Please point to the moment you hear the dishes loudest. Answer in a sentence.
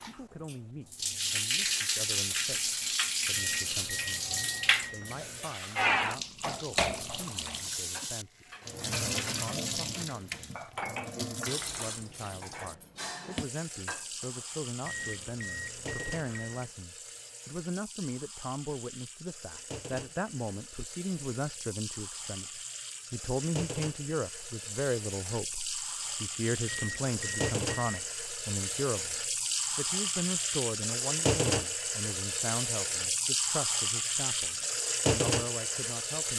The loudest moment of the dishes is at 11 seconds.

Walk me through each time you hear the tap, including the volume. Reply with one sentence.
You can hear the tap from 0.0 to 36.3 s, getting quieter then louder.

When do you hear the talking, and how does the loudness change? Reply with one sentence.
You can hear the talking from 0.1 to 36.3 s, getting louder.